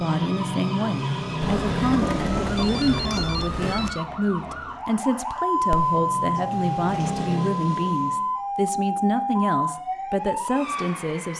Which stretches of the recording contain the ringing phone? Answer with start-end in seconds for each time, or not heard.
1.4-4.0, 5.7-7.3.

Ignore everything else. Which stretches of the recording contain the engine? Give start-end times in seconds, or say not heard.
0.0-3.3, 5.5-8.3.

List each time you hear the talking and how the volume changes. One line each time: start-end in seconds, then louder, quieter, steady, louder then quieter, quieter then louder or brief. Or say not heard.
0.0-11.3 steady.